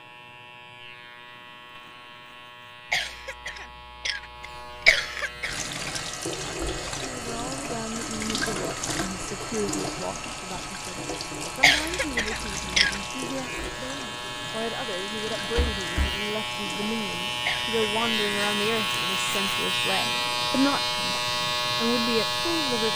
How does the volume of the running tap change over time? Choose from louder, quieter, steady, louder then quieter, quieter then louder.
quieter.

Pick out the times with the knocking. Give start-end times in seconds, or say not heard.
15.6-16.2.